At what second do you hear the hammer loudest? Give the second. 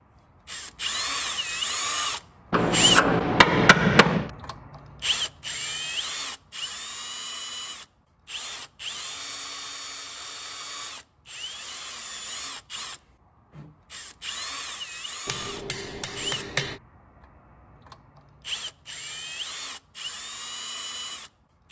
4 s.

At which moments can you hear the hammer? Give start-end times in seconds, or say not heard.
2.5-4.3, 15.2-16.8.